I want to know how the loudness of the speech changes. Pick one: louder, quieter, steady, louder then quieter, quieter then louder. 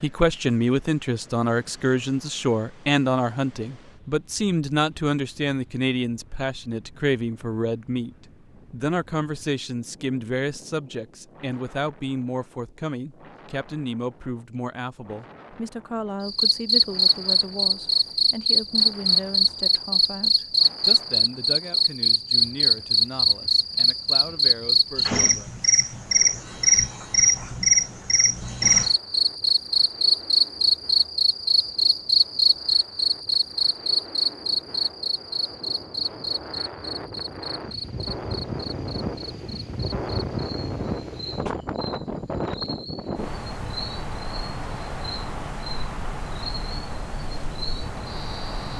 quieter.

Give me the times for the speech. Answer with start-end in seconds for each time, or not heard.
0.0-25.6.